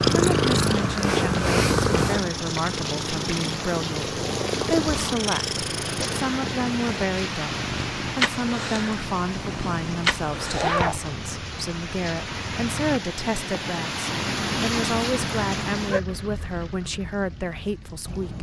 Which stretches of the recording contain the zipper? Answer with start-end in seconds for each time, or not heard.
10.5-11.1.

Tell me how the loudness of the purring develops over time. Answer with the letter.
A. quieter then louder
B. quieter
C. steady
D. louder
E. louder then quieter
B.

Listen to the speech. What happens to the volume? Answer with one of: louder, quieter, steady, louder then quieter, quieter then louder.
steady.